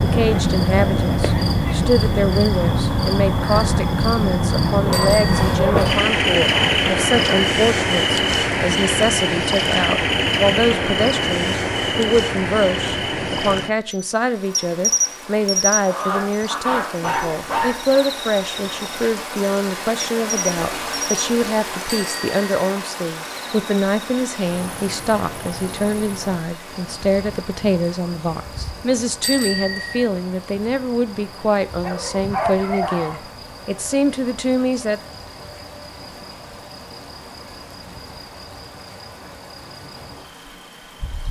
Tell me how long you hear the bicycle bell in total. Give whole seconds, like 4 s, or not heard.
2 s.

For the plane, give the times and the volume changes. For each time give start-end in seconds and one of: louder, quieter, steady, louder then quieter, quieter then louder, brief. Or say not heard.
not heard.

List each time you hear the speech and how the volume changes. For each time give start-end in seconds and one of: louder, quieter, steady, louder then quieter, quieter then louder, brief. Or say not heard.
0.0-35.0 steady.